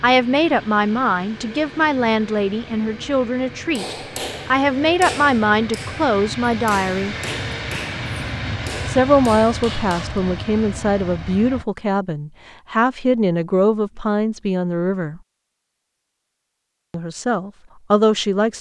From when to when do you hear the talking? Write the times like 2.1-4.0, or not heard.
0.0-7.2, 8.8-15.2, 16.9-18.5.